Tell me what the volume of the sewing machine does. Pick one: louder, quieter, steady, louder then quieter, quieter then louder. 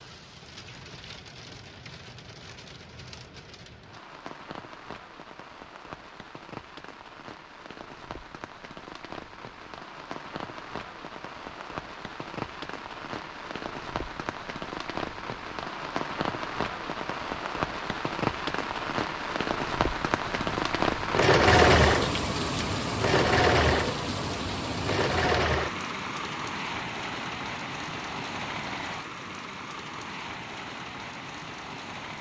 quieter.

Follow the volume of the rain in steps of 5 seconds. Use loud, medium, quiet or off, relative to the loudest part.
quiet, quiet, medium, loud, loud, medium, medium.